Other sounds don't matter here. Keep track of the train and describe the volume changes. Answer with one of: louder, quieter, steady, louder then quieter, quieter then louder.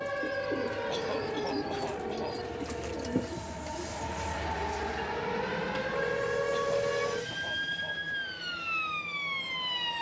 louder then quieter.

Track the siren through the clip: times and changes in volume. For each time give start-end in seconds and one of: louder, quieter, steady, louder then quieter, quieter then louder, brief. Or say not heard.
0.0-9.9 quieter then louder.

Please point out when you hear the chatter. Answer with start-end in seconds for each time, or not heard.
not heard.